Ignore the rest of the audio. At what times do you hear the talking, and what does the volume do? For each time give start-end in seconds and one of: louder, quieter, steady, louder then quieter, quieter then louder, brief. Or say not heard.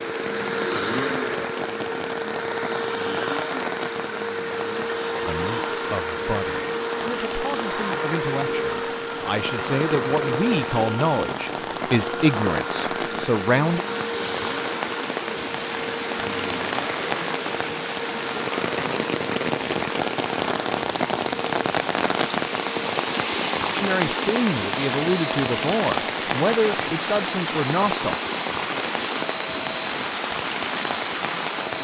5.2-13.8 louder
23.7-28.2 steady.